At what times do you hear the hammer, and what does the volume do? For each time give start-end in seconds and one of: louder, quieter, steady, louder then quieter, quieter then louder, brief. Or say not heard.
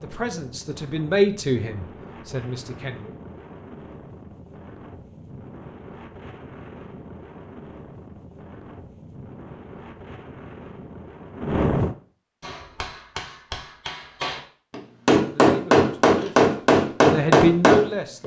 12.4-18.2 louder.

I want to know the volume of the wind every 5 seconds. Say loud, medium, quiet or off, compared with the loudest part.
quiet, quiet, loud, off.